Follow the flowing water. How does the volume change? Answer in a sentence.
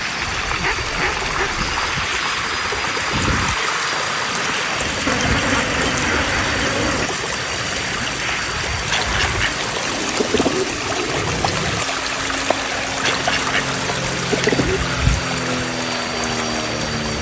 The volume of the flowing water stays about the same.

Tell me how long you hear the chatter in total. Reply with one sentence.
The chatter can't be heard in this clip.